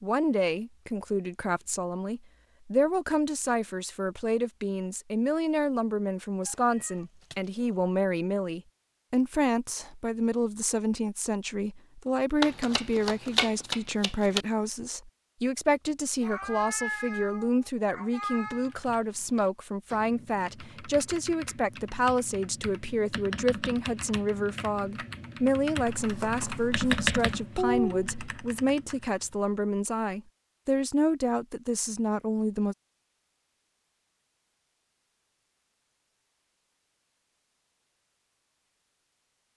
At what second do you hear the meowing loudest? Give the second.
28 s.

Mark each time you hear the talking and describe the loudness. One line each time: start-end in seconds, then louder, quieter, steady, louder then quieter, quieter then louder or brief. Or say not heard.
0.0-32.8 steady.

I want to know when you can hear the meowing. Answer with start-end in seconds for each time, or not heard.
6.5-7.8, 16.2-18.7, 27.6-28.1.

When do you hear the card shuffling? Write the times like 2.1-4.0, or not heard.
12.4-14.4, 25.9-27.4.